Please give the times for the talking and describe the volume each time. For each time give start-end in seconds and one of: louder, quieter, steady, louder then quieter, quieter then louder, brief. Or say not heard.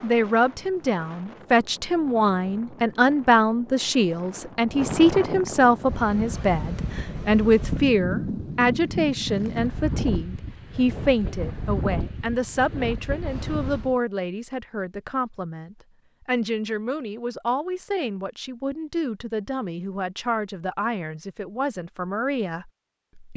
0.0-23.3 quieter.